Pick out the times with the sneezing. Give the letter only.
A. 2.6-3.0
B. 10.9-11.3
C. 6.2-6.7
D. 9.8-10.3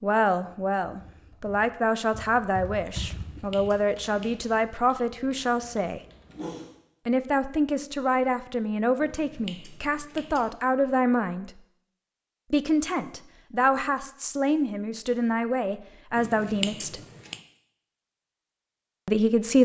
C.